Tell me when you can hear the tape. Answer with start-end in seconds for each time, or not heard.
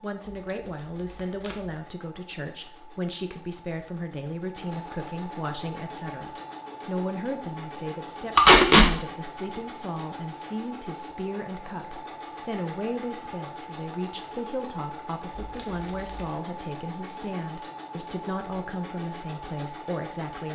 0.5-1.6, 8.3-8.8, 15.3-16.2.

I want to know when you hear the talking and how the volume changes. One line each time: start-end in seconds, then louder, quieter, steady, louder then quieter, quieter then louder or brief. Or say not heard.
0.0-20.5 steady.